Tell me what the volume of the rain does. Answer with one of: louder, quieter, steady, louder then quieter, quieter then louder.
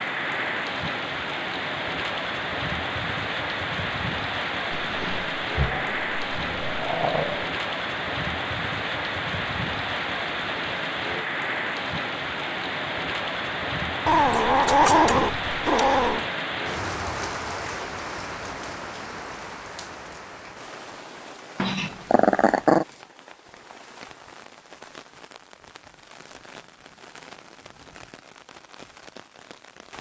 quieter.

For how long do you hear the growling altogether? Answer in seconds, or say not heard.
6 s.